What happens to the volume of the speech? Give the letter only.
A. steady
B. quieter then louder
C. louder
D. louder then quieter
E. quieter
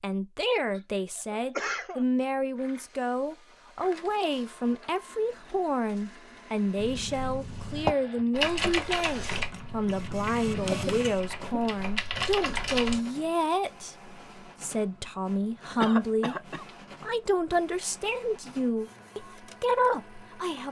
A.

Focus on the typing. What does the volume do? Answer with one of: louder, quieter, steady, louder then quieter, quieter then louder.
quieter then louder.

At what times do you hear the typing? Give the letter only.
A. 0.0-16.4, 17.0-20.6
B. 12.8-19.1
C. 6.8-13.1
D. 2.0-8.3
C.